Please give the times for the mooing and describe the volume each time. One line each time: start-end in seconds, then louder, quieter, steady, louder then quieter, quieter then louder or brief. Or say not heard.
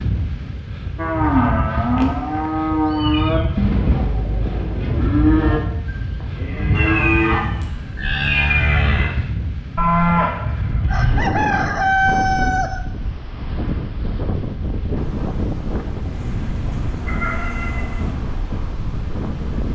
0.9-11.3 steady.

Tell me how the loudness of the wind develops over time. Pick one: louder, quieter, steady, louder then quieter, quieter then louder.
steady.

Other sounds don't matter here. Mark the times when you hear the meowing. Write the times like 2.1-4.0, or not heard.
1.9-3.5, 6.8-9.1, 16.1-18.1.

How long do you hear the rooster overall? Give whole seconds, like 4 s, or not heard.
2 s.